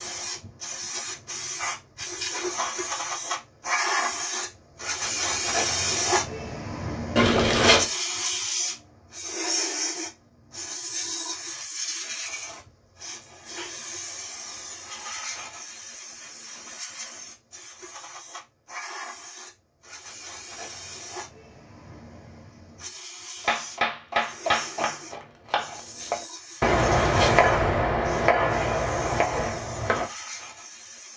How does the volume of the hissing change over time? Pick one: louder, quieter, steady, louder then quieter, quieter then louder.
quieter.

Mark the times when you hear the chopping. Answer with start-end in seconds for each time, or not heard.
23.4-30.1.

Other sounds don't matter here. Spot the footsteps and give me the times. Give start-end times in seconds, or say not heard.
not heard.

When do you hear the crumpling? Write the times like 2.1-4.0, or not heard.
7.2-7.8, 26.6-27.4.